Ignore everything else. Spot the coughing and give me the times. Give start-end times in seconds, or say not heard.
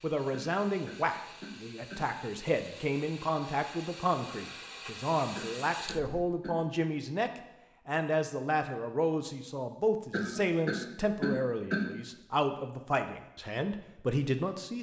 0.3-2.0, 5.3-6.6, 10.1-11.8.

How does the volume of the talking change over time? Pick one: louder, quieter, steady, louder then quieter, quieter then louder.
steady.